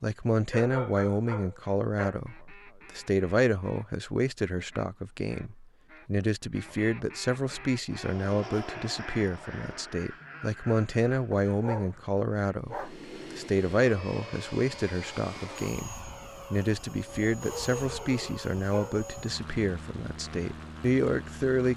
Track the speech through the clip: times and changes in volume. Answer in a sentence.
You can hear the speech from 0.0 to 21.7 s, at a steady volume.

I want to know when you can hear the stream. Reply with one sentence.
The stream can't be heard in this clip.